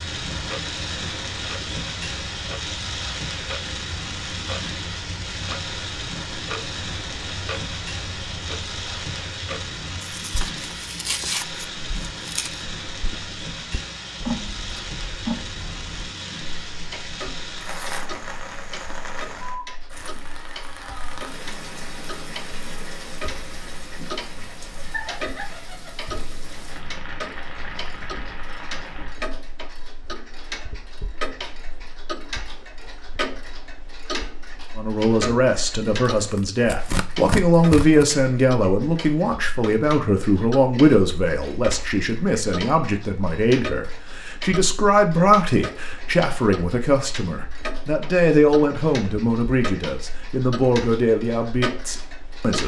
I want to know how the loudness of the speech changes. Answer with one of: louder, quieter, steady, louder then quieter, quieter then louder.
steady.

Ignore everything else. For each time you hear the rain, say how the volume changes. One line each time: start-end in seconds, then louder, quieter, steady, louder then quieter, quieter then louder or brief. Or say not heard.
0.0-29.1 quieter.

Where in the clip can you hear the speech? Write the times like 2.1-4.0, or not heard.
34.8-52.6.